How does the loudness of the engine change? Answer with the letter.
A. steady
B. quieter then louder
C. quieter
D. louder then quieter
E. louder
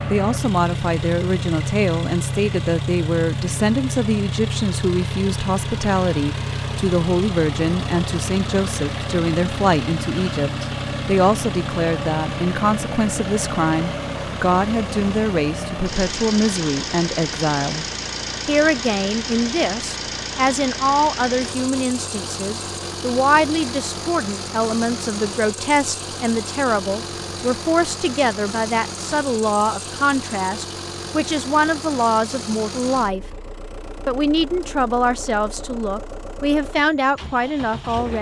C.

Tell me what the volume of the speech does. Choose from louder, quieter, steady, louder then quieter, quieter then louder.
steady.